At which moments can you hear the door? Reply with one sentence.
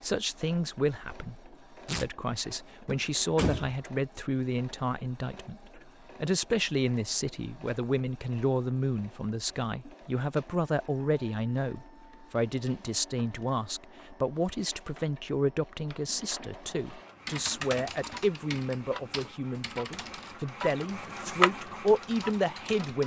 You can hear the door from 2.9 to 3.8 s.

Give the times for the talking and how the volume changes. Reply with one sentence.
You can hear the talking from 0.0 to 23.0 s, at a steady volume.